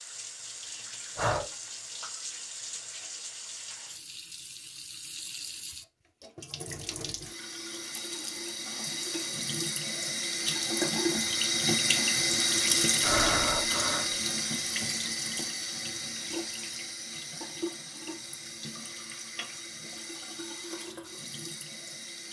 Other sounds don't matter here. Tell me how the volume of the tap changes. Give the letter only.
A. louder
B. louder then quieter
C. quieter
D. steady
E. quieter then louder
B.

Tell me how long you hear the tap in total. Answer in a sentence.
You can hear the tap for 22 seconds altogether.